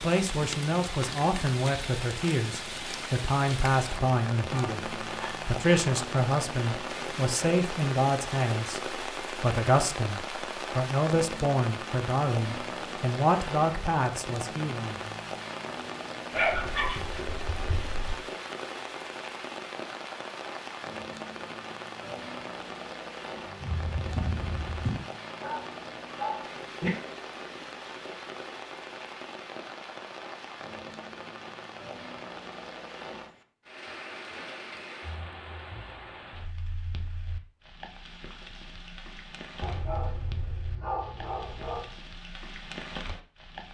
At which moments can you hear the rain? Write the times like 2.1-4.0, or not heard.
0.0-43.6.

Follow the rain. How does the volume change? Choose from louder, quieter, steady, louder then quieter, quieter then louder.
quieter.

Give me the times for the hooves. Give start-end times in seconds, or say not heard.
23.6-25.1.